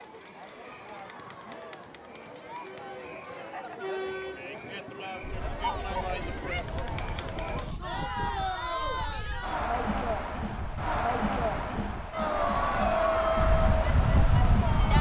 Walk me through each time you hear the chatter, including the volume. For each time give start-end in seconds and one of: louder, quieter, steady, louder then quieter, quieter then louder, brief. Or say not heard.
0.0-14.9 louder.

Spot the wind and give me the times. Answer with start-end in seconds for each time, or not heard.
5.2-14.9.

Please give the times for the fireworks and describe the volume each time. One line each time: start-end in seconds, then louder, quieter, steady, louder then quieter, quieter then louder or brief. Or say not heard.
not heard.